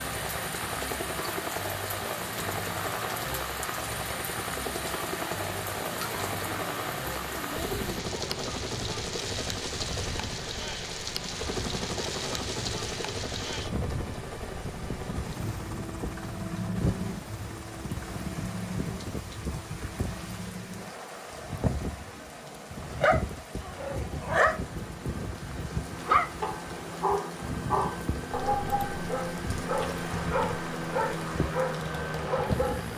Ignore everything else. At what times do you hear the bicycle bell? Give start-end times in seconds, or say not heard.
not heard.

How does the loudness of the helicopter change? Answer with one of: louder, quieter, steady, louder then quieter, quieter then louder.
quieter then louder.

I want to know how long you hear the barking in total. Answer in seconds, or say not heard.
10 s.